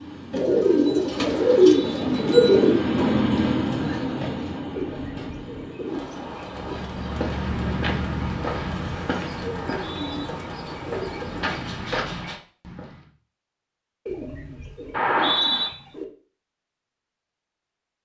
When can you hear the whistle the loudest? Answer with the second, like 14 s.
15 s.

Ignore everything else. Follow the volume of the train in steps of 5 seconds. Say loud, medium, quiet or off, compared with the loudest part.
loud, medium, medium, off.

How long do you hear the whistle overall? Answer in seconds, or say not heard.
2 s.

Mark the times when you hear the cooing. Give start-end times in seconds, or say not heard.
0.3-2.8, 4.8-6.8, 9.4-11.5, 14.1-16.1.